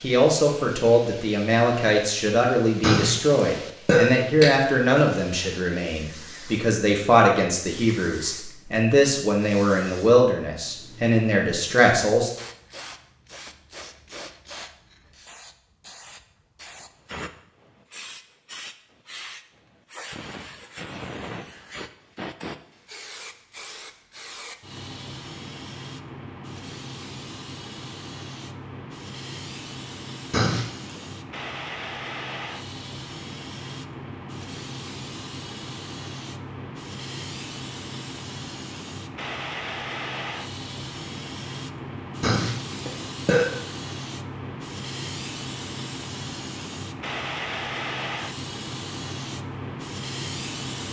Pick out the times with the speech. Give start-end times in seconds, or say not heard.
0.0-12.3.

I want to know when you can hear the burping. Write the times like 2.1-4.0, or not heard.
2.8-4.5, 30.3-30.9, 42.2-43.5.